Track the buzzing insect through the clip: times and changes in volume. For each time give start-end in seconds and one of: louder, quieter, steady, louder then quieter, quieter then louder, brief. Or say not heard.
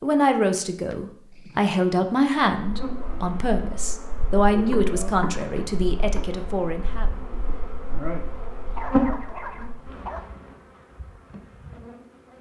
2.5-12.3 louder then quieter.